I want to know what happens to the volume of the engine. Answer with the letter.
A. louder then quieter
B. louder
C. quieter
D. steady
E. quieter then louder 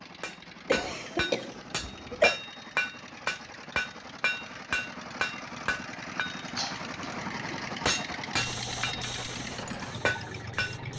B.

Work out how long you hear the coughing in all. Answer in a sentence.
You can hear the coughing for 3 seconds altogether.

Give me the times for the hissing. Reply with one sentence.
The hissing can be heard from 8.3 to 10.9 s.